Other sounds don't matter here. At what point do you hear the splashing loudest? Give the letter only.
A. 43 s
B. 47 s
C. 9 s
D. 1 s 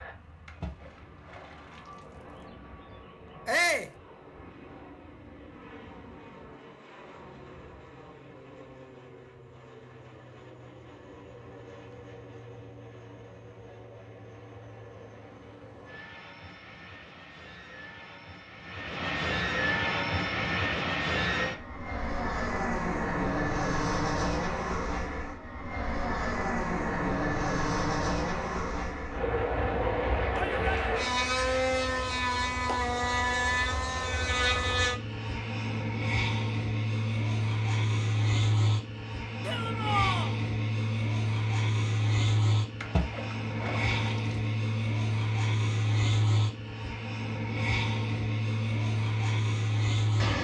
A.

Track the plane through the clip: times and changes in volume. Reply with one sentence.
You can hear the plane from 0.0 to 50.3 s, getting louder.